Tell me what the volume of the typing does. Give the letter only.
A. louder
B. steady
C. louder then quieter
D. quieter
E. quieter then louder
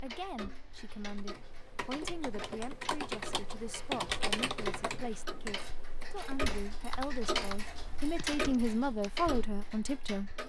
C.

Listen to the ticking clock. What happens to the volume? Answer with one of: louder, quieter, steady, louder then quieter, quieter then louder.
louder.